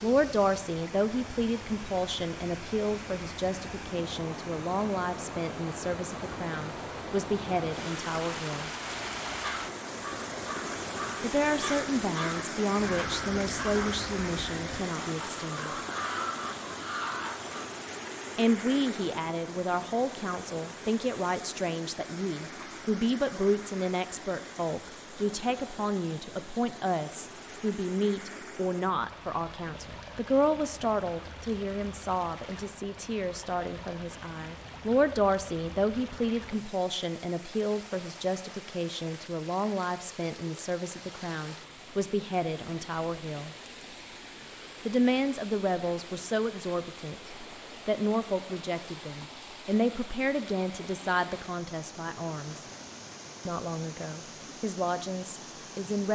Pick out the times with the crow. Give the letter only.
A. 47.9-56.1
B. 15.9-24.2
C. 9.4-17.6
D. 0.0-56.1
C.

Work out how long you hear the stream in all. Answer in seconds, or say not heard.
56 s.